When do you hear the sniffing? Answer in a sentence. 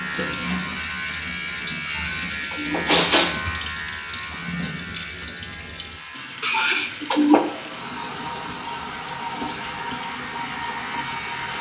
The sniffing can be heard from 1.9 to 3.5 s and from 6.4 to 7.4 s.